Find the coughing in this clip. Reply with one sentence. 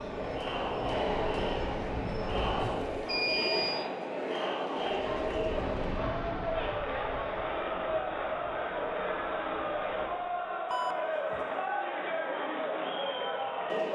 You can't hear the coughing here.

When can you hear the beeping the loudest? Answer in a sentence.
The volume of the beeping peaks at 3 seconds.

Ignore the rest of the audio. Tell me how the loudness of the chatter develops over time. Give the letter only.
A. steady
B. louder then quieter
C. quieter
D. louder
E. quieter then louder
A.